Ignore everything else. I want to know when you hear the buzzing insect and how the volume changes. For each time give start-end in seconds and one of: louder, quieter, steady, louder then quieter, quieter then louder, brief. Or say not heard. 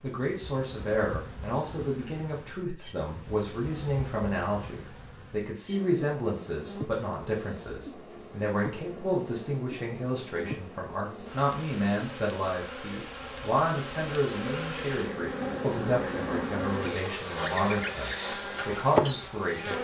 0.0-19.7 louder.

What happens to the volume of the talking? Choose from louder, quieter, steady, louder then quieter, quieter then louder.
steady.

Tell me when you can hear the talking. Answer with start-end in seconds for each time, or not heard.
0.0-19.7.